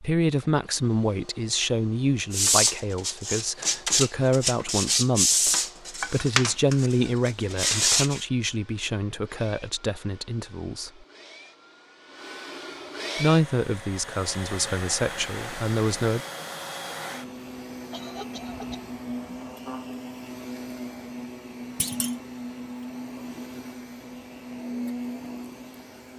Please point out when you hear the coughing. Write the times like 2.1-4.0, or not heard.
17.9-18.9.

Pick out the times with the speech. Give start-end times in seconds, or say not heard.
0.0-10.9, 13.2-16.2.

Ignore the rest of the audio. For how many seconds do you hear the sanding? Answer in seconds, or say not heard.
6 s.